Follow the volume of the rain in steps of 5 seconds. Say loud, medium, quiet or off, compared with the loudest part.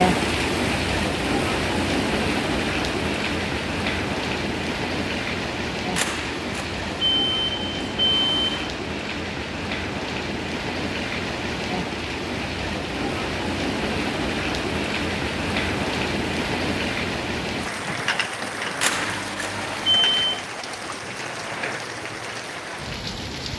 loud, medium, loud, loud, medium.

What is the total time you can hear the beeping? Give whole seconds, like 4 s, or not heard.
4 s.